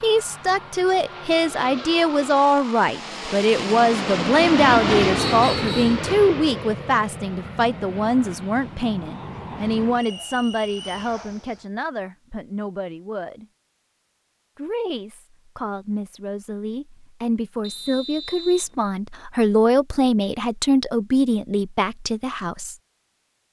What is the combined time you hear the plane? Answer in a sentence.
You can hear the plane for 12 seconds altogether.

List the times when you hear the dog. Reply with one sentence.
You can't hear the dog here.